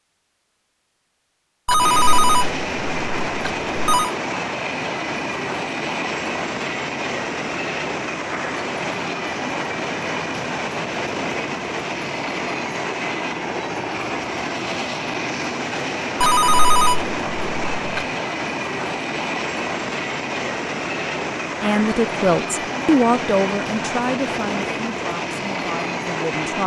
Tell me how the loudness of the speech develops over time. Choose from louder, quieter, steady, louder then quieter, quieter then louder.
quieter.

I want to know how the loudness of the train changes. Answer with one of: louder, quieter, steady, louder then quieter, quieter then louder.
steady.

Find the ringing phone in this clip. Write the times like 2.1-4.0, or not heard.
1.6-4.1, 16.2-18.1.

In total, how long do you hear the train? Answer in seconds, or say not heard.
25 s.